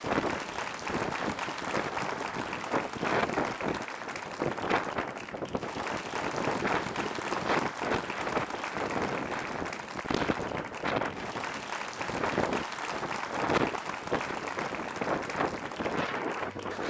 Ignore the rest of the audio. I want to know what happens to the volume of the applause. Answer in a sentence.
The loudness of the applause stays about the same.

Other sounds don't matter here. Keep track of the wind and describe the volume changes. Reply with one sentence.
The loudness of the wind stays about the same.